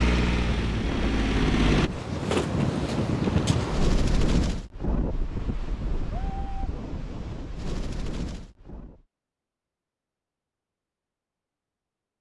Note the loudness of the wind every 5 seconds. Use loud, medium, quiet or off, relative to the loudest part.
loud, medium, off.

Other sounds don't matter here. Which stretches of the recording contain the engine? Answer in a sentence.
The engine can be heard from 0.0 to 1.9 s.